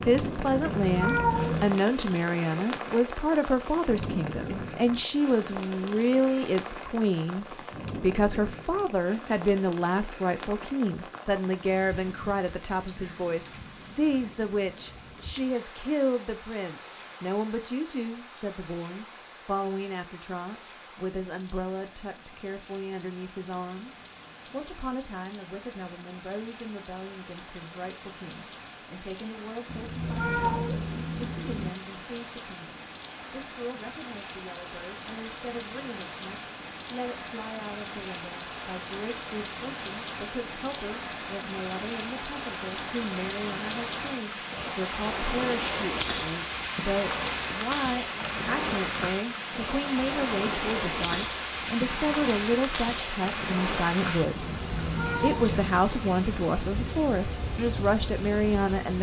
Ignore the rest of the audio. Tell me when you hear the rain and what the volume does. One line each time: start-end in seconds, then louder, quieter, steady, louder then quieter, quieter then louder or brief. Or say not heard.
0.0-58.9 quieter then louder.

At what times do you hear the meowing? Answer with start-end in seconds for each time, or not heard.
0.5-1.8, 29.6-31.7, 54.6-55.7.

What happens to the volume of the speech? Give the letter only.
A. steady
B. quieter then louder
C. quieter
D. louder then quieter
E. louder
B.